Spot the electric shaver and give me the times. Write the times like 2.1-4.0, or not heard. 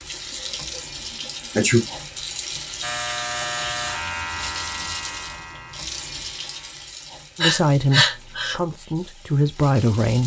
2.8-6.8.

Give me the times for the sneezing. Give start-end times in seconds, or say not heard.
0.8-1.9, 7.4-8.6.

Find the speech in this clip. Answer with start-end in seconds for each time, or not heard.
7.3-10.2.